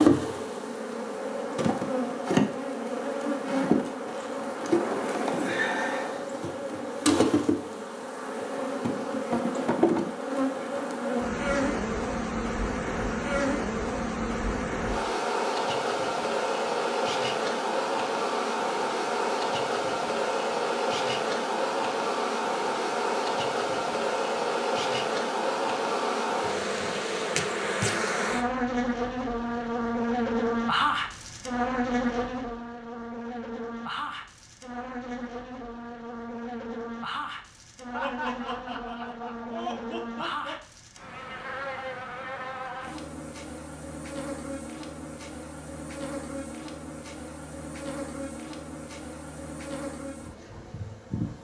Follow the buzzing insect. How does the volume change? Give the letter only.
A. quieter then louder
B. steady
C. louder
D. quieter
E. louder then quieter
D.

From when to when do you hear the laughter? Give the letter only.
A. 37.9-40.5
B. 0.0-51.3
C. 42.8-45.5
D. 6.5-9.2
A.